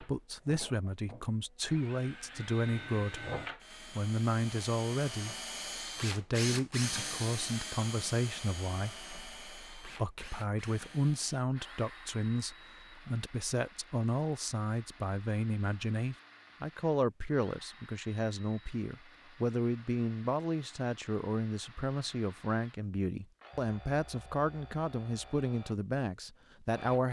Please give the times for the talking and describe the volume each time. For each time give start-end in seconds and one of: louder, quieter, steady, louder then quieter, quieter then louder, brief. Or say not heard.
0.0-27.0 steady.